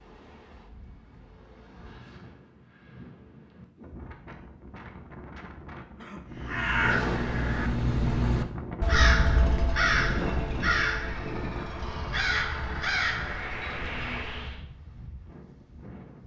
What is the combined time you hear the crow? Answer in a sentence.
The crow can be heard for 8 seconds in total.